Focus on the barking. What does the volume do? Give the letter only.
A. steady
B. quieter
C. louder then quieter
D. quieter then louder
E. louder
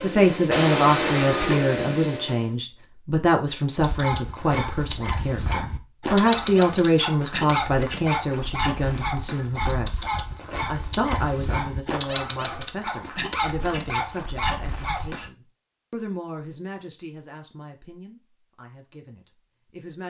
A.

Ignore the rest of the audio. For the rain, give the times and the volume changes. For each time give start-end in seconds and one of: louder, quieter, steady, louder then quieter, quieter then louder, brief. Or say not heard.
not heard.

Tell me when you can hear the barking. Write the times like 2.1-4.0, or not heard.
3.8-15.3.